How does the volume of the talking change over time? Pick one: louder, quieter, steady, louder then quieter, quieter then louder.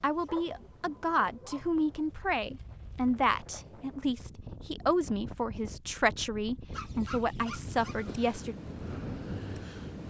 steady.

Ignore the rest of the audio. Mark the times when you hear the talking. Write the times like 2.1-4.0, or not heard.
0.0-8.6.